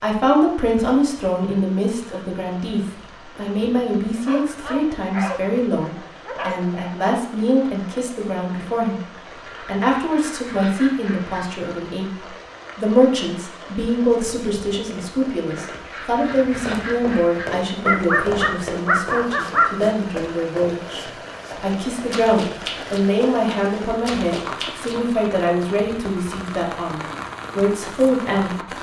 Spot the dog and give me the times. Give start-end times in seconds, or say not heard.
4.2-6.8, 17.8-19.8.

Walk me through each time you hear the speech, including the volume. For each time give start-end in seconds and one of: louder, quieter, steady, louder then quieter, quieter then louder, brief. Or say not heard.
0.0-28.7 steady.